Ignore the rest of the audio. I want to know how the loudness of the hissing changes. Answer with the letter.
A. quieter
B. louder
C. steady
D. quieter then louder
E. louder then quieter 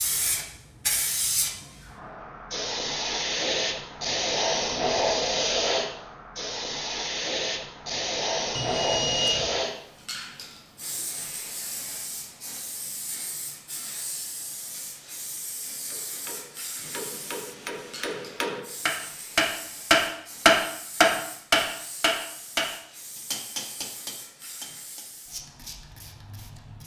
A.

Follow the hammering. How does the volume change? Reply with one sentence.
The volume of the hammering goes up, then down.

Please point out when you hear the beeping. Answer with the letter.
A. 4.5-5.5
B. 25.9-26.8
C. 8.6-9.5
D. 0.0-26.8
C.